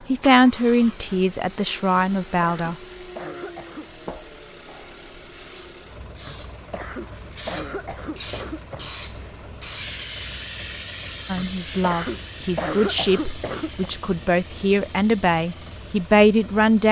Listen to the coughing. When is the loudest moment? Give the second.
13 s.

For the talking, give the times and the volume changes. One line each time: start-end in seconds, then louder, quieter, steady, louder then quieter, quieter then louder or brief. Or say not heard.
0.1-2.8 brief
11.2-16.8 louder.